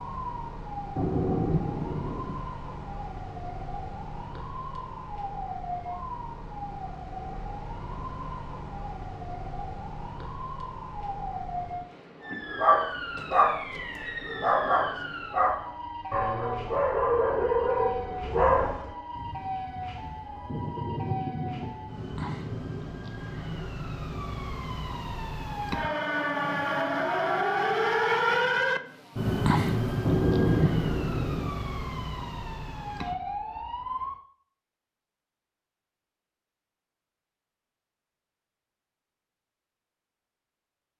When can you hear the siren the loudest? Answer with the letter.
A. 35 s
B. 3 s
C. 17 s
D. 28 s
D.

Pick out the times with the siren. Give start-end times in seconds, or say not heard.
0.0-34.2.